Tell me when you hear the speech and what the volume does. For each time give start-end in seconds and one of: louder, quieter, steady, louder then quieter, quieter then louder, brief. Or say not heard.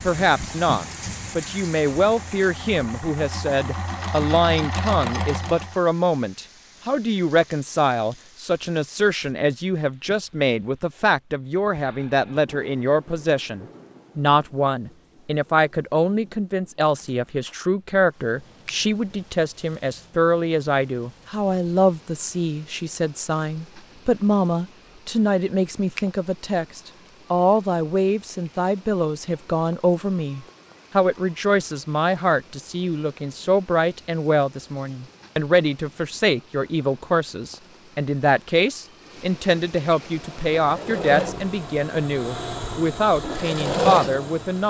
0.1-44.6 steady.